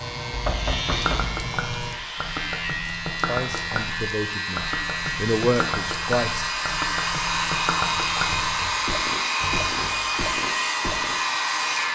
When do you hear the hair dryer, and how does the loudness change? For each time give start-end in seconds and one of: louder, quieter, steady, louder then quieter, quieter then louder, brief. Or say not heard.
0.0-11.8 louder.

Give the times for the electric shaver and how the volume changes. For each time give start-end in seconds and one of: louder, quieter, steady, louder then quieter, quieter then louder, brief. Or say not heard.
0.0-11.8 steady.